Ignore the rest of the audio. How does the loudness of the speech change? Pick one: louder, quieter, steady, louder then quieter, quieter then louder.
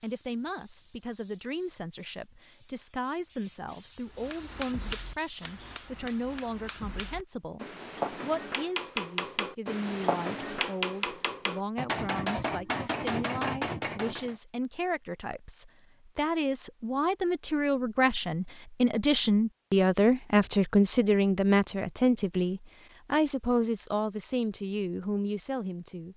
louder.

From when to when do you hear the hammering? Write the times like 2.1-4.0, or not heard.
4.2-14.3.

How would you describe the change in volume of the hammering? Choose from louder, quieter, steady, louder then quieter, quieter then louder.
louder.